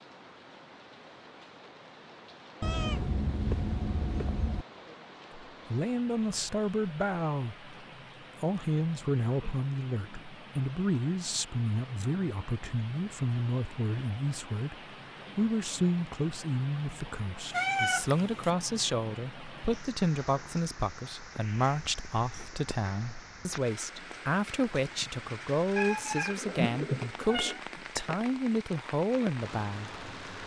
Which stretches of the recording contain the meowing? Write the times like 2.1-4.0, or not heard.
2.6-4.7, 17.5-18.5, 25.8-27.6.